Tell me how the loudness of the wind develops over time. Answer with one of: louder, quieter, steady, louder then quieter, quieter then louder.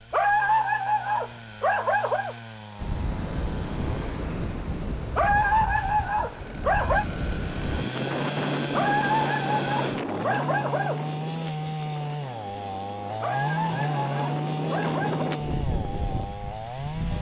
quieter then louder.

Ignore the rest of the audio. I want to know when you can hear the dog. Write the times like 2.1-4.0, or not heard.
0.1-2.4, 5.2-7.0, 8.7-11.0, 13.2-15.2.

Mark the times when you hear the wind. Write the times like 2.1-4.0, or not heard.
2.8-17.1.